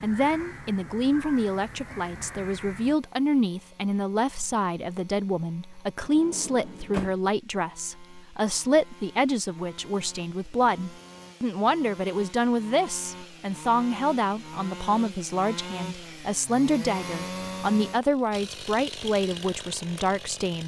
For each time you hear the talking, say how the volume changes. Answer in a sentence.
You can hear the talking from 0.0 to 20.6 s, at a steady volume.